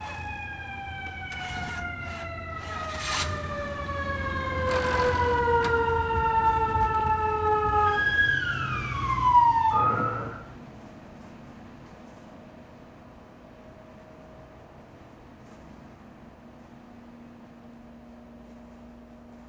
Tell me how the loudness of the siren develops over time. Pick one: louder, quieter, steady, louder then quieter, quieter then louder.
louder.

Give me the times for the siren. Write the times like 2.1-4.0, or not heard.
0.0-10.4.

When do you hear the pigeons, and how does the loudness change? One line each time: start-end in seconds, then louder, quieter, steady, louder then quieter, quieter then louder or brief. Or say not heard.
not heard.